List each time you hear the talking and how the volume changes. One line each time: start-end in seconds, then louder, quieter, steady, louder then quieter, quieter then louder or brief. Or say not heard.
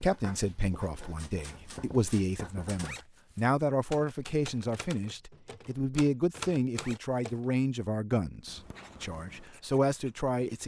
0.0-10.6 steady.